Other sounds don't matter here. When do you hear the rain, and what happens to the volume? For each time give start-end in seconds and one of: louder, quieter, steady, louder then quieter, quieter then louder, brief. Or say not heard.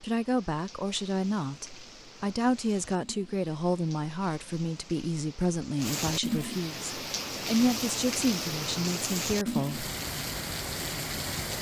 0.0-11.5 louder.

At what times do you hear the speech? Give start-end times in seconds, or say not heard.
0.0-9.9.